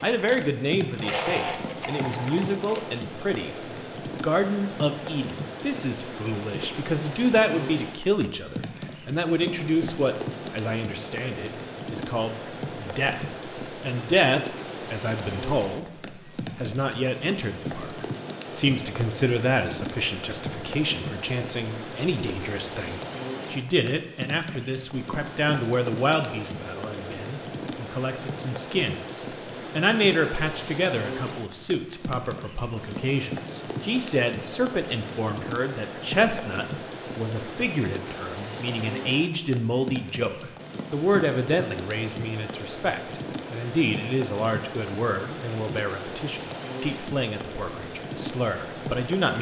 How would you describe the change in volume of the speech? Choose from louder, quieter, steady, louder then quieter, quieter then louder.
steady.